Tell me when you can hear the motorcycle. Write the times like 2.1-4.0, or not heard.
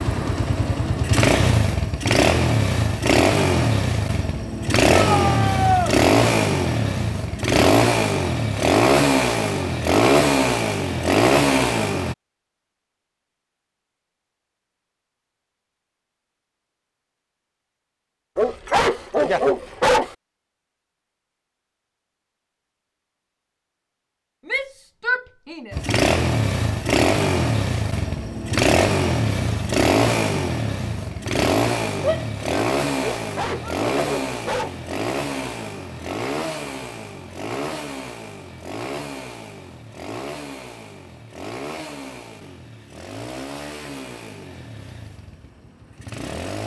0.0-12.2, 25.7-46.6.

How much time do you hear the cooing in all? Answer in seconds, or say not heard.
not heard.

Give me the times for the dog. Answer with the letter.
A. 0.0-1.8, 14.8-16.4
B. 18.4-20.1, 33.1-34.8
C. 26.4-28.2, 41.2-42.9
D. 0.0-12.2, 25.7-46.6
B.